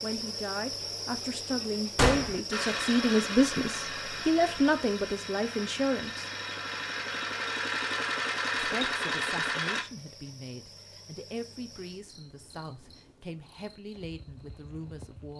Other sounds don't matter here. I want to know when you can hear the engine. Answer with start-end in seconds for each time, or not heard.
2.5-9.8.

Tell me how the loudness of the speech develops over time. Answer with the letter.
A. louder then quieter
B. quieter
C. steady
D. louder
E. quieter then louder
A.